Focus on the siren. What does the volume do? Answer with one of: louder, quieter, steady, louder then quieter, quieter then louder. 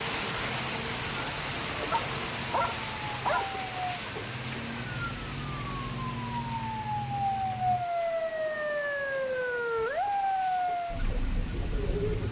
louder.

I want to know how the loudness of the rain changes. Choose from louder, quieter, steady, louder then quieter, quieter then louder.
quieter.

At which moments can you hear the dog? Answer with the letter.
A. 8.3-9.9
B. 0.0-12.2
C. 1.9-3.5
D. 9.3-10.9
C.